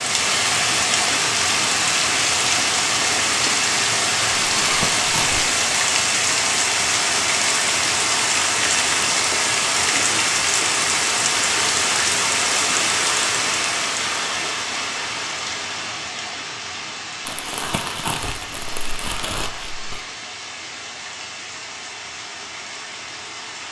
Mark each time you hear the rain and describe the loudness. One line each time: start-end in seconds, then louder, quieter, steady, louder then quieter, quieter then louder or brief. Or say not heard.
0.0-23.6 quieter.